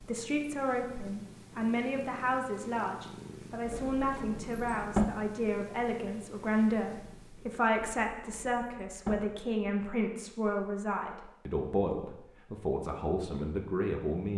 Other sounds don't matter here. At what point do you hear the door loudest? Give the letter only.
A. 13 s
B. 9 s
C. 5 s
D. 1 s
C.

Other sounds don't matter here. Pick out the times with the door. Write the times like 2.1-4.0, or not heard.
3.6-5.0, 7.8-9.2.